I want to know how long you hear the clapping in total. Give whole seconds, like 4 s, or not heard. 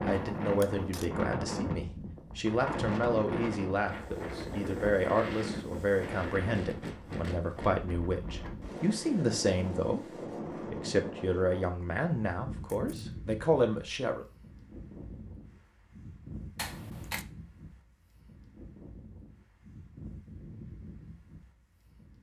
not heard.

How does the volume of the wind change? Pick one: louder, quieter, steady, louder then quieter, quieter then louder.
quieter.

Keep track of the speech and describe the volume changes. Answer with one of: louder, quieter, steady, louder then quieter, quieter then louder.
steady.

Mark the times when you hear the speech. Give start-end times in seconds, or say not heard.
0.0-14.2.